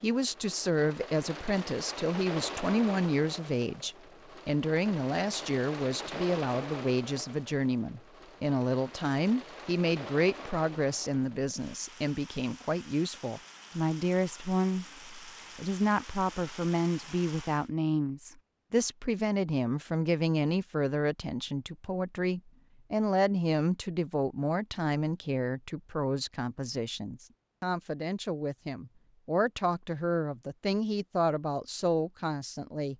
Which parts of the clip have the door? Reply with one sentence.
The door can't be heard in this clip.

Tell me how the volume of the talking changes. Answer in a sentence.
The loudness of the talking stays about the same.